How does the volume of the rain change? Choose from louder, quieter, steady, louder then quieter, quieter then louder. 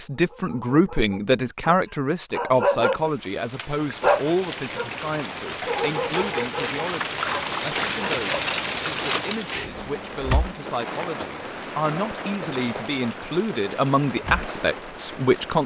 louder then quieter.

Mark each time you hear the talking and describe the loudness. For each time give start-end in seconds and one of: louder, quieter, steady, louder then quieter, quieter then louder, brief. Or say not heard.
0.0-15.6 quieter then louder.